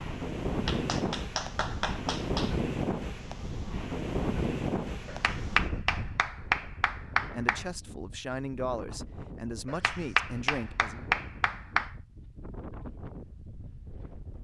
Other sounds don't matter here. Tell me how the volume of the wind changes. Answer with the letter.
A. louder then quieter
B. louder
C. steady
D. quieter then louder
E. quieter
E.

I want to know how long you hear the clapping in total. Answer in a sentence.
You can hear the clapping for 7 seconds altogether.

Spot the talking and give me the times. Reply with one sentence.
The talking can be heard from 7.3 to 11.2 s.